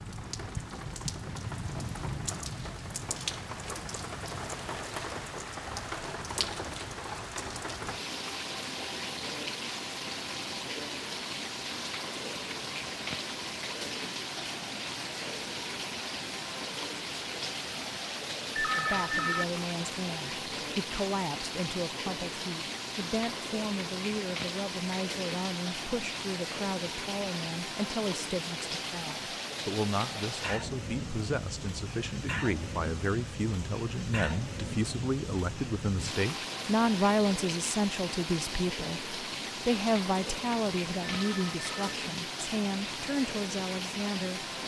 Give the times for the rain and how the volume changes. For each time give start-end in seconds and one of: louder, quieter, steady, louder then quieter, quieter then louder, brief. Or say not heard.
0.0-44.6 steady.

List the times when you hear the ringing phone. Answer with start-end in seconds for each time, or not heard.
18.6-19.4, 41.0-42.0.